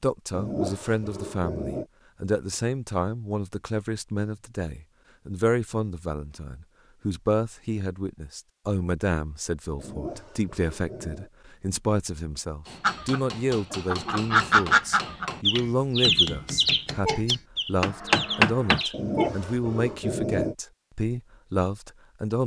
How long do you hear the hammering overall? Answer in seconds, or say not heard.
6 s.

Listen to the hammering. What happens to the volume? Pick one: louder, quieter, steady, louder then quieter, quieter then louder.
louder.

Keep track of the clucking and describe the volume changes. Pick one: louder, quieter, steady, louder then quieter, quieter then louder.
louder then quieter.